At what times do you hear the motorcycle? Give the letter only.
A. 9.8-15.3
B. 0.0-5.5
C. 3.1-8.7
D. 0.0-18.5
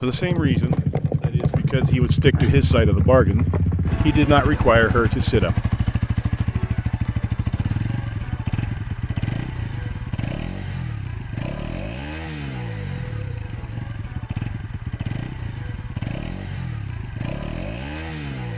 D.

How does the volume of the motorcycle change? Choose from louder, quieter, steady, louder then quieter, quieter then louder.
quieter.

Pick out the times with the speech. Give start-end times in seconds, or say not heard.
0.0-5.5.